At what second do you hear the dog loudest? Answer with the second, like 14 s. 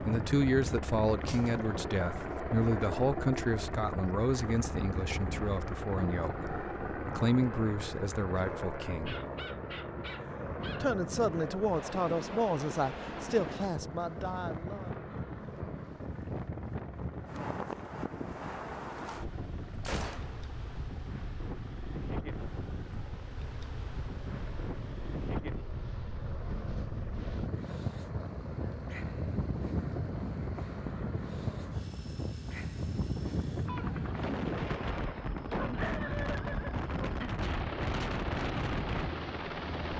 36 s.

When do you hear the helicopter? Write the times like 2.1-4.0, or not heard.
0.0-39.9.